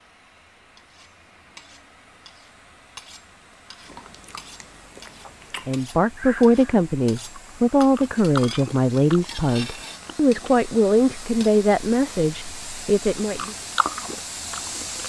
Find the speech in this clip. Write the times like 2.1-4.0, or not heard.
5.7-13.6.